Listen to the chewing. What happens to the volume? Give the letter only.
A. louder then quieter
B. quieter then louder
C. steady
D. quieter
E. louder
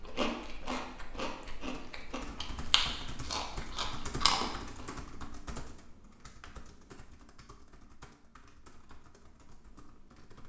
E.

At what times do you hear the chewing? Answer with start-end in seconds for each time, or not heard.
0.0-4.8.